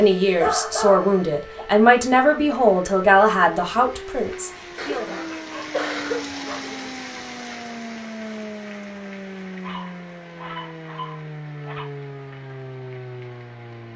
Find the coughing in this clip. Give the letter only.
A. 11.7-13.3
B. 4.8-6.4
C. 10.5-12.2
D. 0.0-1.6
B.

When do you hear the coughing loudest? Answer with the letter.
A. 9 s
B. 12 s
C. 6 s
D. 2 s
C.